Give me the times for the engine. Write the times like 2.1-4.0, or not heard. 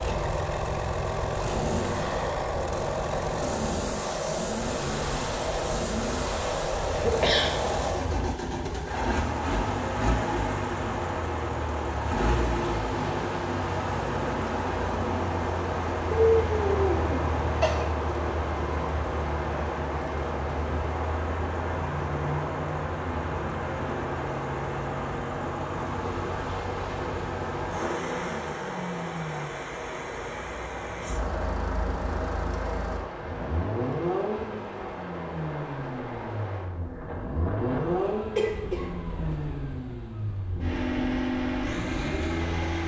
0.0-42.8.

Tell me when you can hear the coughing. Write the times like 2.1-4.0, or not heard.
6.9-8.2, 16.1-17.9, 38.4-39.4.